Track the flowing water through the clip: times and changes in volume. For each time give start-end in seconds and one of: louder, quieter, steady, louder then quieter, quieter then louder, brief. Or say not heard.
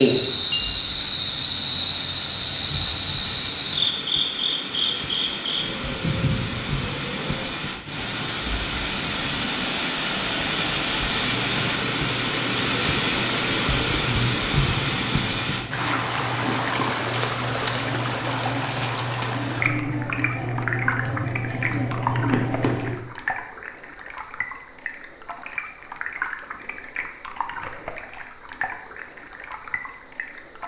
0.0-30.6 louder then quieter.